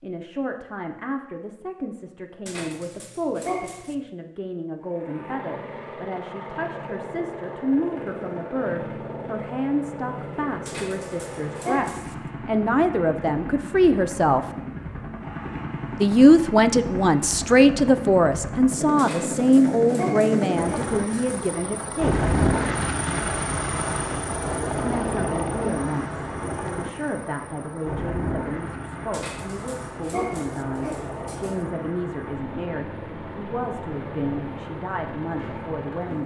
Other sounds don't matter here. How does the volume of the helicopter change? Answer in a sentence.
The volume of the helicopter goes up, then down.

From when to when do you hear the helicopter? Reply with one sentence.
You can hear the helicopter from 4.8 to 36.2 s.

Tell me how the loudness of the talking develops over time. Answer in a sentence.
The volume of the talking goes up, then down.